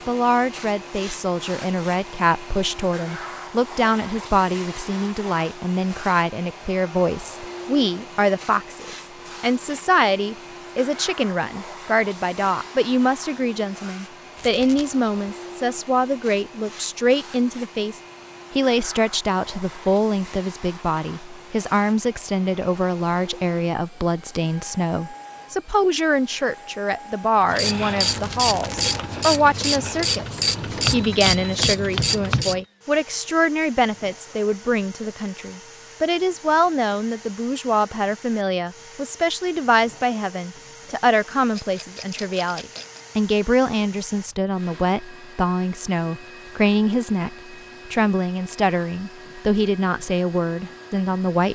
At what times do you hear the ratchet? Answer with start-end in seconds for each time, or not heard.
27.4-32.6.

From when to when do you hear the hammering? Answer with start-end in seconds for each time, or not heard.
30.6-32.6.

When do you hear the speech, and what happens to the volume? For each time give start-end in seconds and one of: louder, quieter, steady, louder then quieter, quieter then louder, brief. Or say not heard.
0.1-51.5 steady.